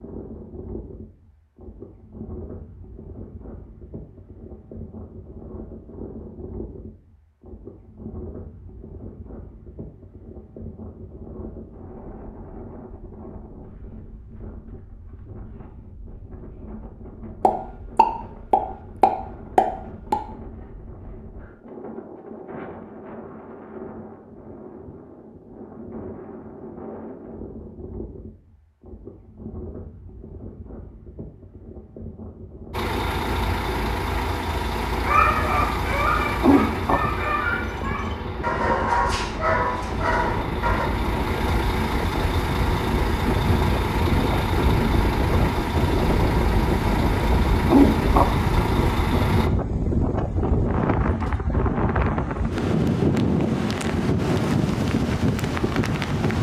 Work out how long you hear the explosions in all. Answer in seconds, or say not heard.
3 s.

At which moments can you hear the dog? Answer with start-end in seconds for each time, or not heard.
35.0-40.9.